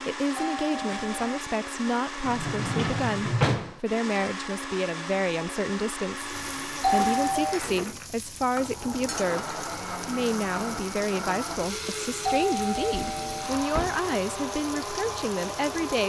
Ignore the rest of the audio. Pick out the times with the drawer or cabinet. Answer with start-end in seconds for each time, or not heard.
2.2-3.8, 7.0-8.1, 12.8-14.1.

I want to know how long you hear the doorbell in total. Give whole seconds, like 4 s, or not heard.
3 s.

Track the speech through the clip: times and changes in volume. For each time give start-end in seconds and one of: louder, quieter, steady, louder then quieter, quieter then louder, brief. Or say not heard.
0.1-16.0 steady.